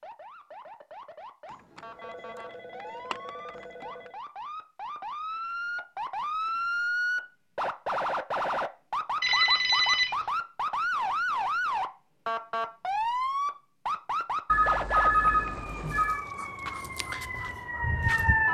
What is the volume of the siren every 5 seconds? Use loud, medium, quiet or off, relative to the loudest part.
quiet, loud, loud, loud.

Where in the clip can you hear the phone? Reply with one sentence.
You can hear the phone from 1.8 to 4.1 s, from 9.2 to 10.2 s and from 14.4 to 16.2 s.